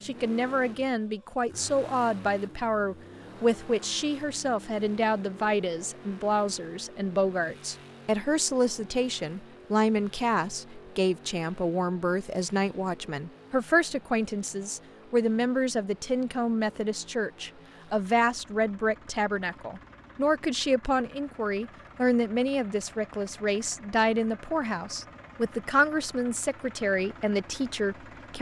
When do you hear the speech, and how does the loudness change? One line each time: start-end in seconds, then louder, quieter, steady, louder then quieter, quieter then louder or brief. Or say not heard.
0.0-28.3 steady.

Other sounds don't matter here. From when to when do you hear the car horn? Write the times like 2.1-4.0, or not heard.
not heard.